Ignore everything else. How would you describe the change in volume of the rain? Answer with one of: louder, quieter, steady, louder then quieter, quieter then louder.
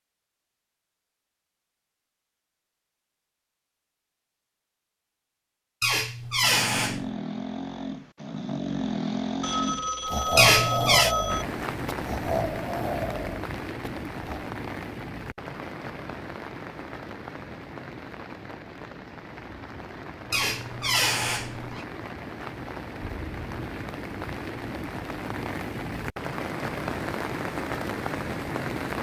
quieter then louder.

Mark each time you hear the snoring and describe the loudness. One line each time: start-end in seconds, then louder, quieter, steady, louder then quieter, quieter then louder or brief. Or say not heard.
6.4-14.5 louder then quieter.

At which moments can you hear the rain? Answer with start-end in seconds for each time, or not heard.
11.2-28.9.